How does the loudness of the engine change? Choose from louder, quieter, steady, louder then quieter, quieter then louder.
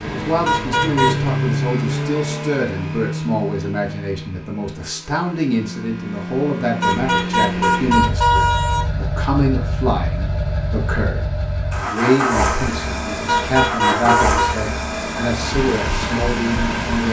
quieter then louder.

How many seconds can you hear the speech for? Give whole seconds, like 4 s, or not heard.
17 s.